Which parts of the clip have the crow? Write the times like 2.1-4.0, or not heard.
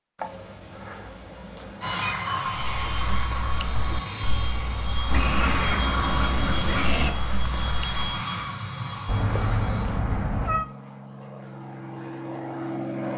2.5-8.2.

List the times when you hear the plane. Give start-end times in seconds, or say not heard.
1.8-13.1.